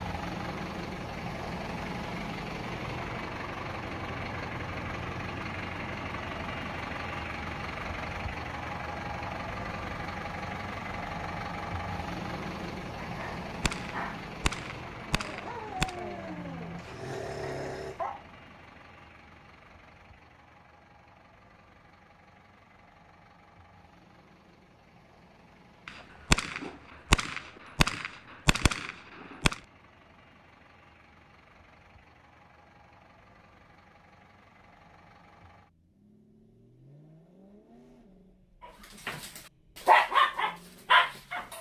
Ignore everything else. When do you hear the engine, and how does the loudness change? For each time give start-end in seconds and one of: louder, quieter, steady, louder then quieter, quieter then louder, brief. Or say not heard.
0.0-41.5 quieter.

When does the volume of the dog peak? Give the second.
40 s.